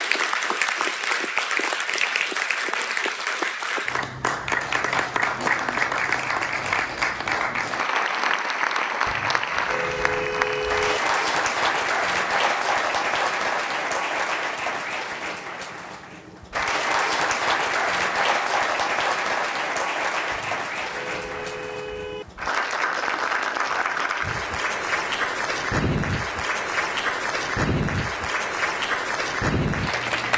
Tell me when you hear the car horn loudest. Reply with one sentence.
The volume of the car horn peaks at 11 seconds.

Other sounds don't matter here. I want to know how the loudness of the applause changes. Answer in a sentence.
The loudness of the applause stays about the same.